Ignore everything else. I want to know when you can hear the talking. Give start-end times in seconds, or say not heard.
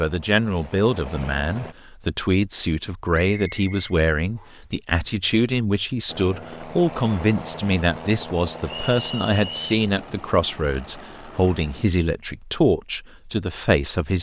0.0-14.1.